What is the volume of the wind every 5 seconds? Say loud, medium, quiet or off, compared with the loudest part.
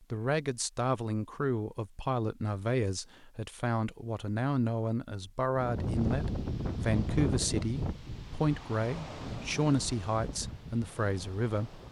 off, loud, medium.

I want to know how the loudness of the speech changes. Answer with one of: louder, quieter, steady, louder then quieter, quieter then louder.
steady.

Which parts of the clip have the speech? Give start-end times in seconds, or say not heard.
0.0-11.8.